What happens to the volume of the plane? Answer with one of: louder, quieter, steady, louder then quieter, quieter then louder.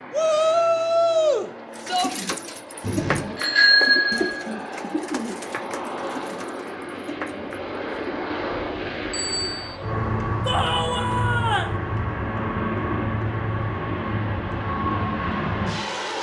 louder.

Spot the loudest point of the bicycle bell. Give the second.
4 s.